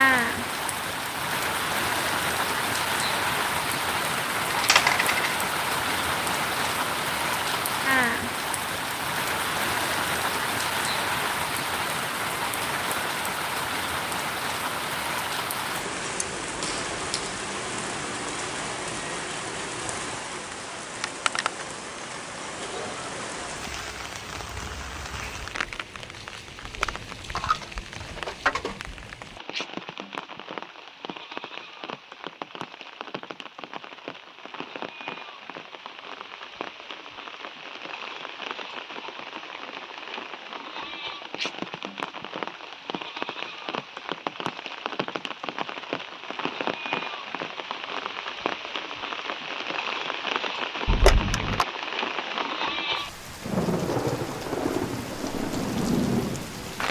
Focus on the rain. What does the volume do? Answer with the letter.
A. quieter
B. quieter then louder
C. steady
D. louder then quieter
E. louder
B.